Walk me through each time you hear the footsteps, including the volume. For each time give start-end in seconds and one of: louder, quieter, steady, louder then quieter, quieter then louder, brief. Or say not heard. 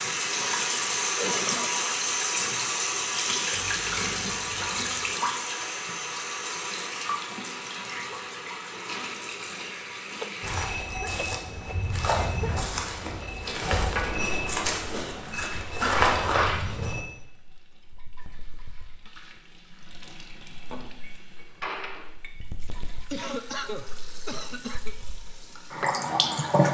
10.4-17.0 louder.